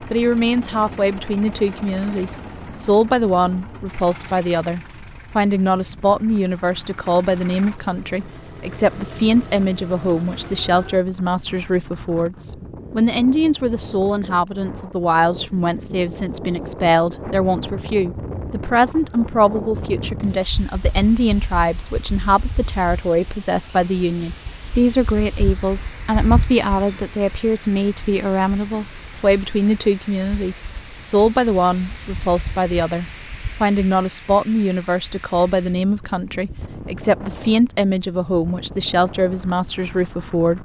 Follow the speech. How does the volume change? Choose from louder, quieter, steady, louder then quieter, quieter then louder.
steady.